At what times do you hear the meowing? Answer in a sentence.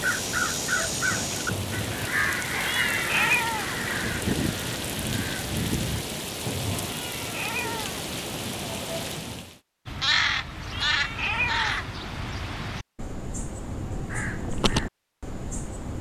You can hear the meowing from 2.6 to 3.8 s, from 6.8 to 8.0 s and from 10.7 to 11.8 s.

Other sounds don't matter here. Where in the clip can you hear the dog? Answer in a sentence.
The dog can't be heard in this clip.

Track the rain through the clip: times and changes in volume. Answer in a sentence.
You can hear the rain from 0.0 to 9.6 s, at a steady volume.